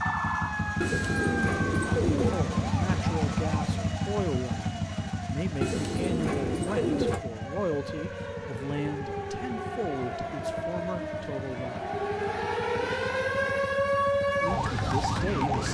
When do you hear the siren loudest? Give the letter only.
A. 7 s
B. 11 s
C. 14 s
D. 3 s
C.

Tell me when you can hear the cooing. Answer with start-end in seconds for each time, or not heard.
0.8-2.4, 5.6-7.2, 11.8-13.5.